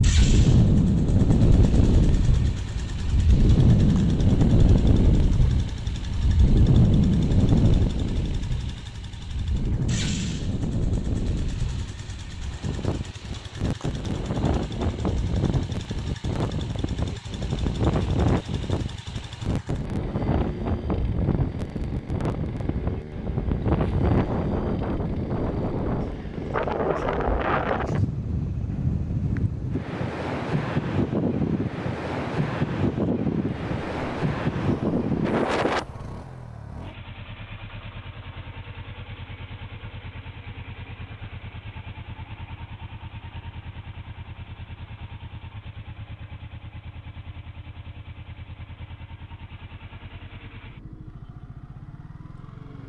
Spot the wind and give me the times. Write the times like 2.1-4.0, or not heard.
0.0-35.9.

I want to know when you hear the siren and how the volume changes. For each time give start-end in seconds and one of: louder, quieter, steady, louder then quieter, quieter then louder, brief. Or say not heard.
not heard.